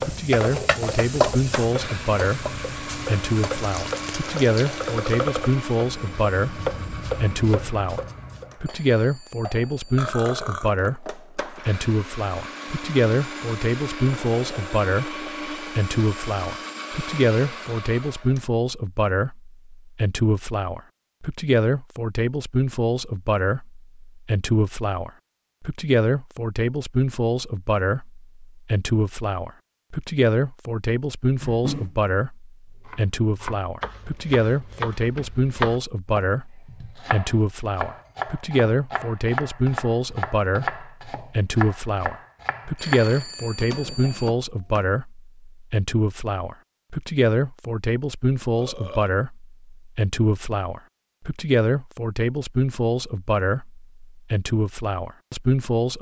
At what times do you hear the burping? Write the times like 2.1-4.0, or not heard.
9.9-11.7, 31.4-31.9, 48.4-49.1.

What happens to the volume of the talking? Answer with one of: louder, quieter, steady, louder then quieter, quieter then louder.
steady.